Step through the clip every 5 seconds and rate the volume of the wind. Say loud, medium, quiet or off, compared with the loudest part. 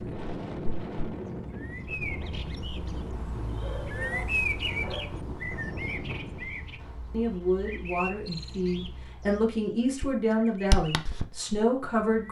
loud, loud, off.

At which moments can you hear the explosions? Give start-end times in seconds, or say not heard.
6.8-7.2.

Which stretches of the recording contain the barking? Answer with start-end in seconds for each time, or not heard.
3.6-5.2.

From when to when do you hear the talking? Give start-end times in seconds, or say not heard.
7.1-12.2.